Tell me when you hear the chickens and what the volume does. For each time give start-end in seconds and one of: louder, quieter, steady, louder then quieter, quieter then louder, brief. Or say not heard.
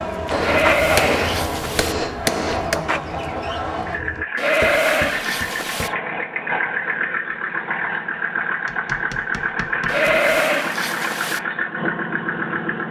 0.0-6.0 quieter.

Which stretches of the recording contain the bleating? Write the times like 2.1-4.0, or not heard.
0.4-1.9, 4.3-5.9, 9.8-11.4.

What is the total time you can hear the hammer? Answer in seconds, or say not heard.
4 s.